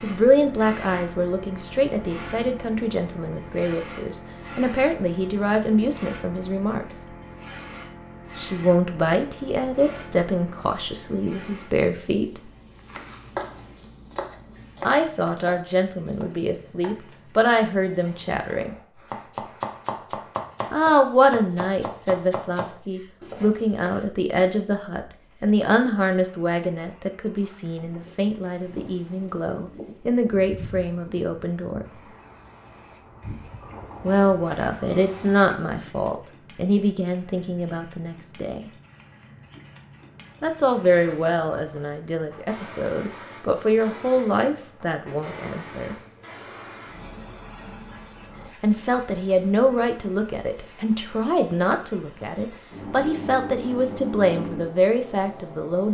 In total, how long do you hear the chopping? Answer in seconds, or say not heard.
11 s.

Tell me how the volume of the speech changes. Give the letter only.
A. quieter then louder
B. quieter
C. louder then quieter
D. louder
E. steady
E.